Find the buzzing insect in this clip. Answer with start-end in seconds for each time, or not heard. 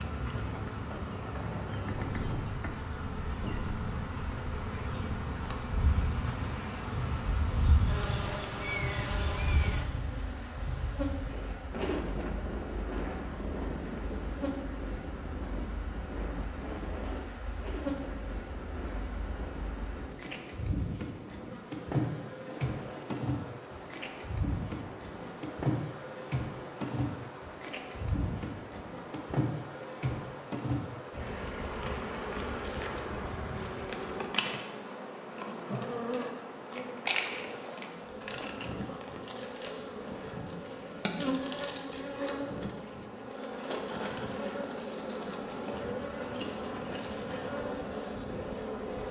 0.0-49.0.